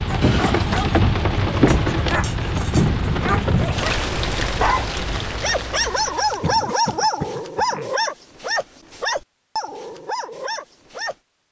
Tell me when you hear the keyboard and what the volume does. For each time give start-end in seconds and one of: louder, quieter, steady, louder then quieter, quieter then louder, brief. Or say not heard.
not heard.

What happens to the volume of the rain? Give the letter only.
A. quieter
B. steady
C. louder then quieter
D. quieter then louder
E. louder
A.